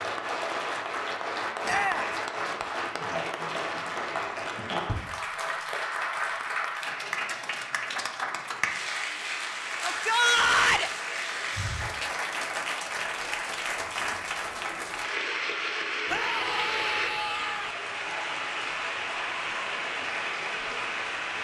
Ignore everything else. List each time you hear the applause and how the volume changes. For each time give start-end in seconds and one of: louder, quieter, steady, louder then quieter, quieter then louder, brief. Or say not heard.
0.0-21.3 steady.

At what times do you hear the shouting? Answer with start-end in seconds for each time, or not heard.
1.6-2.1, 9.8-10.9, 16.1-17.8.